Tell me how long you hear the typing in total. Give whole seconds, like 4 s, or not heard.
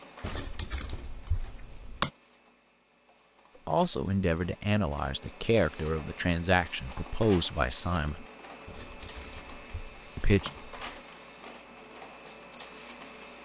4 s.